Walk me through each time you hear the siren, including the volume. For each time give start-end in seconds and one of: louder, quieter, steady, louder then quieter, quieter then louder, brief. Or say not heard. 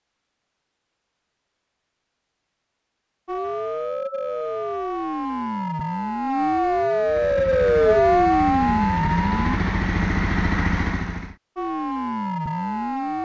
3.2-9.6 louder
11.6-13.1 brief.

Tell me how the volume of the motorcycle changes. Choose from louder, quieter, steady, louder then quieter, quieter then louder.
louder.